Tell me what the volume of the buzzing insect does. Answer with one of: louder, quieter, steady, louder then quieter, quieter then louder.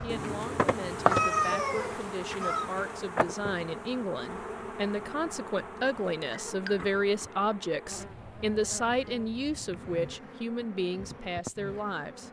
quieter.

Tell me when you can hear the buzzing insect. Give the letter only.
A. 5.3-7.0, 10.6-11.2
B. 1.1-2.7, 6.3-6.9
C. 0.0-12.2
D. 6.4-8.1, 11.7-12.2
C.